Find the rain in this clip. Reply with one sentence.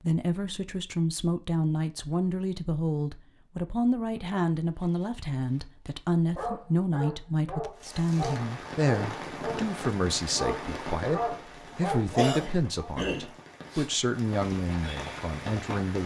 You can hear the rain from 7.8 to 16.0 s.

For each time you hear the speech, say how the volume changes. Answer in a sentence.
You can hear the speech from 0.0 to 16.0 s, at a steady volume.